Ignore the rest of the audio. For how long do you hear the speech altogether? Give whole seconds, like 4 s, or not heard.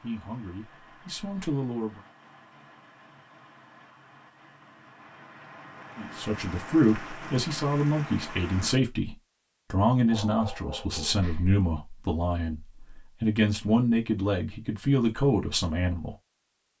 12 s.